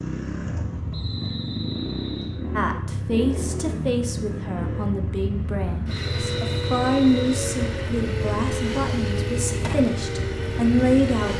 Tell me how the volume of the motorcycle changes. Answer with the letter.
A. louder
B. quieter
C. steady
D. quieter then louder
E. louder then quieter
C.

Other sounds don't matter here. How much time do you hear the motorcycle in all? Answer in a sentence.
The motorcycle can be heard for 11 seconds in total.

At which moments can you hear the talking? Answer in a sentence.
You can hear the talking from 2.5 to 11.3 s.